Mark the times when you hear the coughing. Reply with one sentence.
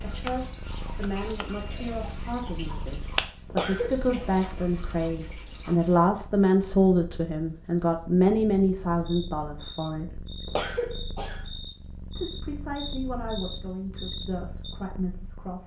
You can hear the coughing from 3.5 to 4.0 s and from 10.4 to 11.4 s.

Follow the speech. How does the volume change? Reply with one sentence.
The volume of the speech goes up, then down.